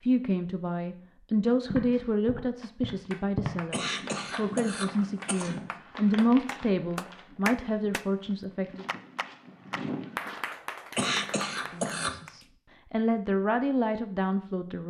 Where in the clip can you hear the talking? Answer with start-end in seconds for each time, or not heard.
0.0-8.8, 11.7-14.8.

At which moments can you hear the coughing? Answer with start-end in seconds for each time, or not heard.
3.7-5.5, 10.9-12.2.